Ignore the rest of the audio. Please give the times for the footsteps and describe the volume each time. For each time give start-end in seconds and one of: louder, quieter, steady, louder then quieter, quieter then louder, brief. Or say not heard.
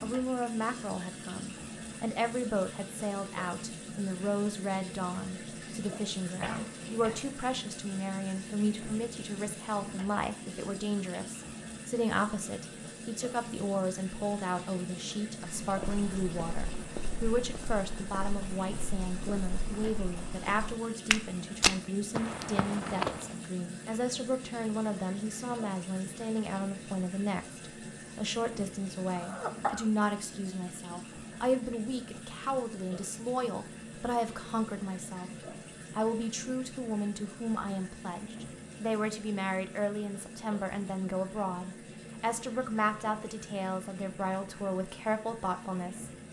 15.6-23.3 louder.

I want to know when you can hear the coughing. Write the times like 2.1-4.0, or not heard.
6.4-7.3, 29.1-29.9.